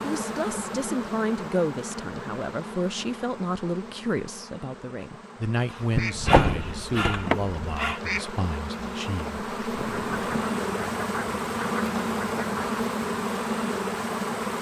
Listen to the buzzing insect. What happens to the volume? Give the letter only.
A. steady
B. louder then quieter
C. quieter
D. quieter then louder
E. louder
D.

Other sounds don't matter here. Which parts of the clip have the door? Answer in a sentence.
You can hear the door from 6.0 to 7.5 s.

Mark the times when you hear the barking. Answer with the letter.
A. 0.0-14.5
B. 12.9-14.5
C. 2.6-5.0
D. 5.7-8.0
D.